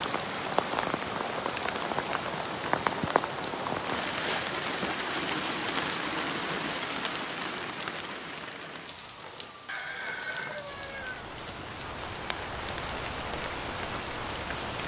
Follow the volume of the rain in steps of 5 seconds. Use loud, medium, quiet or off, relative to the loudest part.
loud, loud, medium.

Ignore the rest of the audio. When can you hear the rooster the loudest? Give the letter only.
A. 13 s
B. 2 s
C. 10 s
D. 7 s
C.